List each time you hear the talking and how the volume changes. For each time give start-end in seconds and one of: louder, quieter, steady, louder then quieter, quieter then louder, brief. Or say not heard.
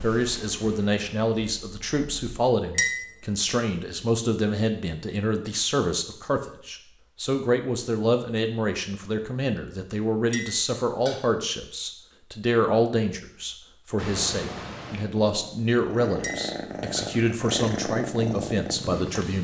0.0-19.3 steady.